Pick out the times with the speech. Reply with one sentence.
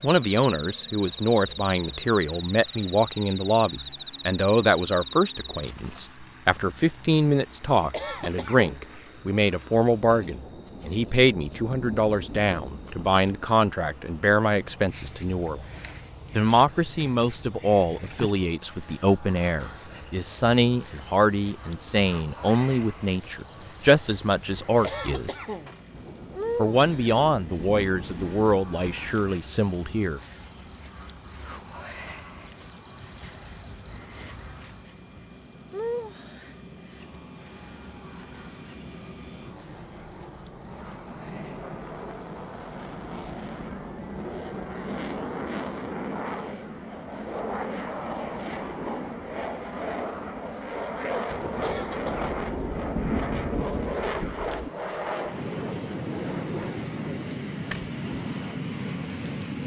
You can hear the speech from 0.0 to 15.7 s, from 16.3 to 25.4 s and from 26.6 to 30.2 s.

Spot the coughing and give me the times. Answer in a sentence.
The coughing can be heard from 7.9 to 8.8 s, from 24.8 to 25.8 s and from 51.6 to 52.3 s.